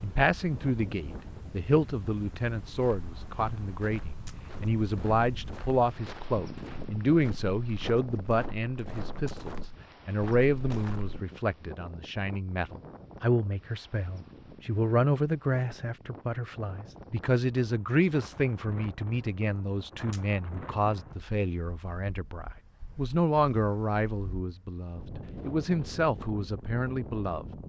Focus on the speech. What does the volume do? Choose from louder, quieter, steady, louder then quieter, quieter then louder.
steady.